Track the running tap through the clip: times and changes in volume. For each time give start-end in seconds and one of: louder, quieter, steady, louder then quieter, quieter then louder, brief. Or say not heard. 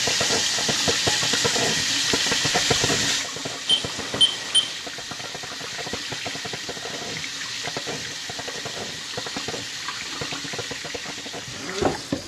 0.0-12.2 quieter.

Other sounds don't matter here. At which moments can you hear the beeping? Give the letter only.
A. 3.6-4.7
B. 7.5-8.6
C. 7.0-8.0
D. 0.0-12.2
A.